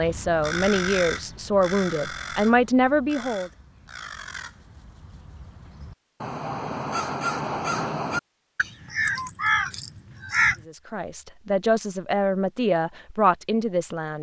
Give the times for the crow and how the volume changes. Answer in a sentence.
The crow can be heard from 0.0 to 10.7 s, getting quieter then louder.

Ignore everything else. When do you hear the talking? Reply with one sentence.
You can hear the talking from 0.0 to 3.5 s and from 10.7 to 14.1 s.